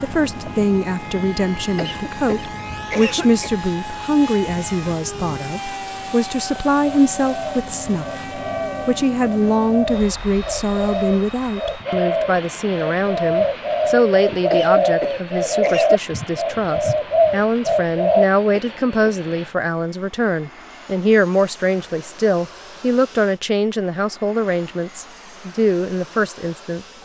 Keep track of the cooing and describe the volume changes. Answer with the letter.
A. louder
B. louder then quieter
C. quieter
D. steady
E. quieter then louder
A.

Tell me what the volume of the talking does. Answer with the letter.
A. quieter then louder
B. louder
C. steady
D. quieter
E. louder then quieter
C.